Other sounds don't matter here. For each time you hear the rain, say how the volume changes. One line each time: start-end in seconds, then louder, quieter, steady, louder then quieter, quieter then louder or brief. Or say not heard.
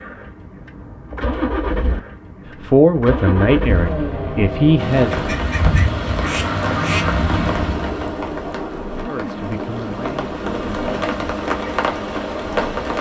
4.8-12.9 quieter then louder.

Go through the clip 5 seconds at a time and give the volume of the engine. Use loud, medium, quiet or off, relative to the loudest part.
loud, loud, medium.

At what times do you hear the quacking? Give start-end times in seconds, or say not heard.
5.1-7.2.